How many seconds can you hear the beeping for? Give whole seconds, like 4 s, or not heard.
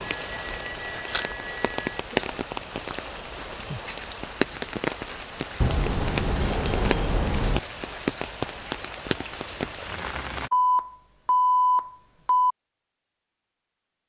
6 s.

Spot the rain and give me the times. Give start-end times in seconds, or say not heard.
0.0-10.5.